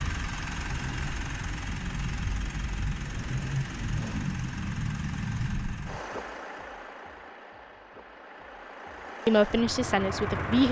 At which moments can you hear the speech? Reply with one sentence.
The speech can be heard from 9.2 to 10.6 s.